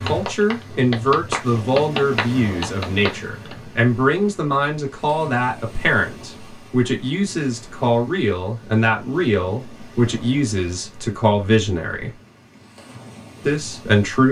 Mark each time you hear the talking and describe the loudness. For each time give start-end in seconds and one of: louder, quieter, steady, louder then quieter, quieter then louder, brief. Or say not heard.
0.0-12.1 steady
13.4-14.2 brief.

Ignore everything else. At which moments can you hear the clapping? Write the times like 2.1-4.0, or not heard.
0.0-3.5.